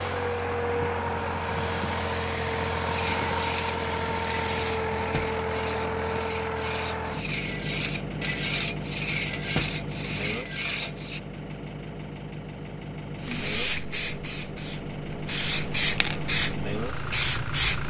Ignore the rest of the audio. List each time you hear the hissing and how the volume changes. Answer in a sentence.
You can hear the hissing from 0.0 to 5.0 s, getting louder; and from 13.2 to 17.8 s, getting quieter then louder.